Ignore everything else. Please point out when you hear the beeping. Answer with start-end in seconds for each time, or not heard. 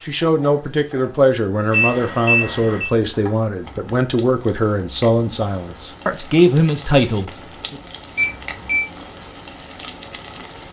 1.7-2.9, 8.2-8.8.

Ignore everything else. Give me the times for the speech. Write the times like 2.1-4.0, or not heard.
0.0-7.8.